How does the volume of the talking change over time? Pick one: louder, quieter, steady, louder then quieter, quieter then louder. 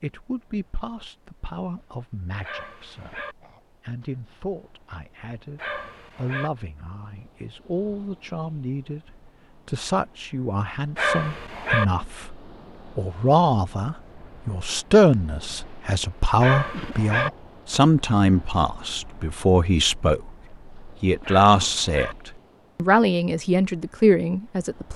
louder.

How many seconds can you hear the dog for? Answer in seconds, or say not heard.
5 s.